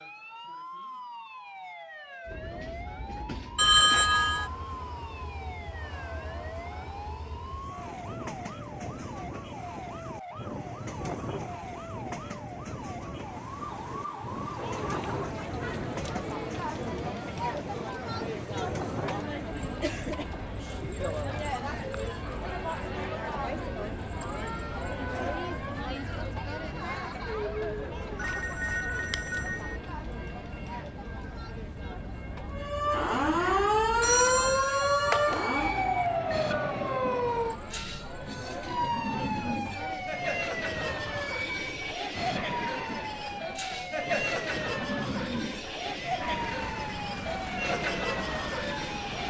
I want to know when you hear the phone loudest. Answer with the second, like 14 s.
4 s.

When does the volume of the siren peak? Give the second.
34 s.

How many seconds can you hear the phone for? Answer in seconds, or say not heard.
4 s.